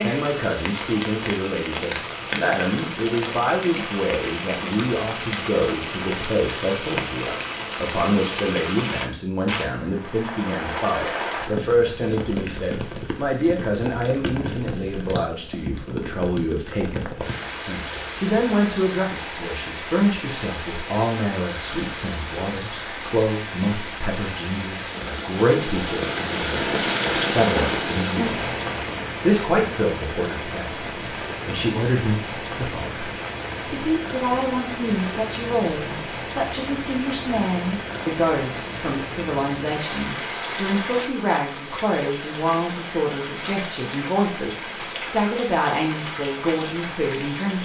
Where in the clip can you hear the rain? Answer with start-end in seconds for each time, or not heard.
0.0-47.6.